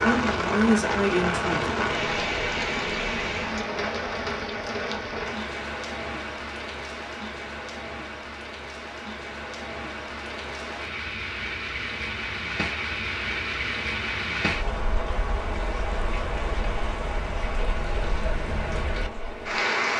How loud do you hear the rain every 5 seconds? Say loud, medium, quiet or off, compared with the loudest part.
loud, medium, loud, loud.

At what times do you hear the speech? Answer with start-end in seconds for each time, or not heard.
0.0-1.7.